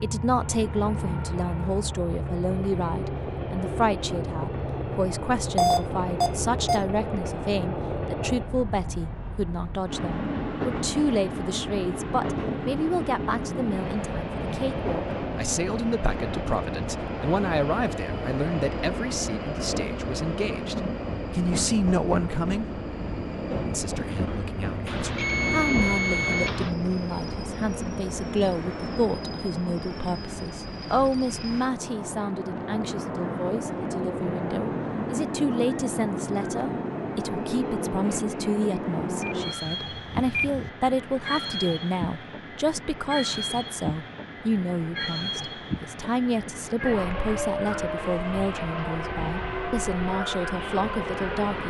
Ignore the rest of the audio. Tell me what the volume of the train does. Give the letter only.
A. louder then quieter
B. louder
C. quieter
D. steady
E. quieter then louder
D.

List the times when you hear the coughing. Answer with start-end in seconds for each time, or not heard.
not heard.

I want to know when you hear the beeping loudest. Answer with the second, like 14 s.
6 s.